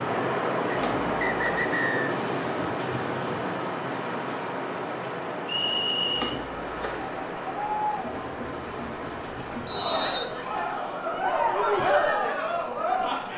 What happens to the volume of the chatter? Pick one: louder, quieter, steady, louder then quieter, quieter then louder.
quieter then louder.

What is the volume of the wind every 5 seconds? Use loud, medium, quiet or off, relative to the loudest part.
loud, medium, quiet.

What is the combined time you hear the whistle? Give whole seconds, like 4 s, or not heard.
3 s.